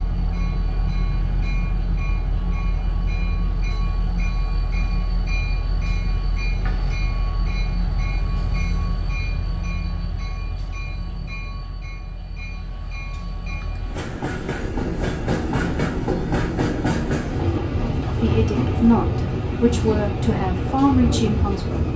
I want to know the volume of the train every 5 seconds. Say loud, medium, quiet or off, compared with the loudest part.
medium, medium, medium, loud, loud.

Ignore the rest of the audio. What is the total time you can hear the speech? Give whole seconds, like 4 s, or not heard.
4 s.